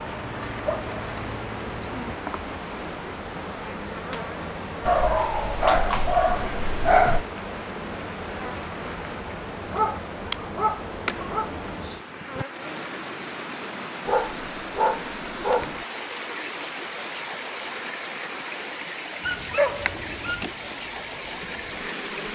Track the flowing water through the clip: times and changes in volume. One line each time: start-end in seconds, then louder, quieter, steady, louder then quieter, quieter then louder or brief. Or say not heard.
0.0-22.3 steady.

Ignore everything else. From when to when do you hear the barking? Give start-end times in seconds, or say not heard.
0.3-2.1, 4.8-7.2, 9.7-11.5, 14.1-15.8, 19.2-20.4.